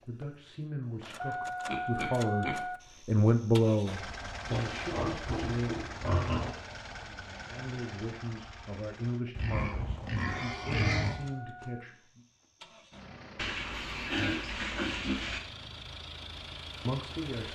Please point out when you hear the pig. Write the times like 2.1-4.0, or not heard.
1.0-2.6, 4.5-6.5, 9.3-11.2, 13.3-15.4.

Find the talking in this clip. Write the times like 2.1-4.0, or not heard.
0.1-5.8, 7.5-12.2, 16.9-17.5.